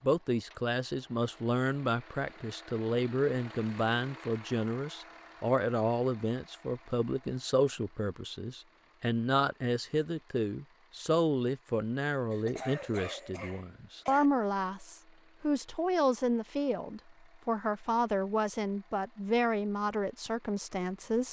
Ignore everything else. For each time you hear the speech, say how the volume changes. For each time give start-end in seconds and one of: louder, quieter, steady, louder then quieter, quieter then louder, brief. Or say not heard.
0.0-21.2 steady.